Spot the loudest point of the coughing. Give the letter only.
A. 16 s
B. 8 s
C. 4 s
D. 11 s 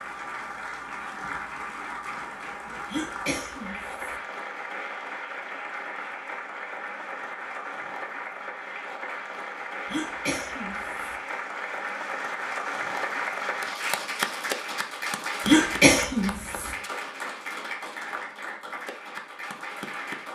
A.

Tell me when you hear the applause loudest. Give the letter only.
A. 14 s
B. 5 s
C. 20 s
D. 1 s
A.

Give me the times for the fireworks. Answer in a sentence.
You can't hear the fireworks here.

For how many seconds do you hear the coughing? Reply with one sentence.
You can hear the coughing for 4 seconds altogether.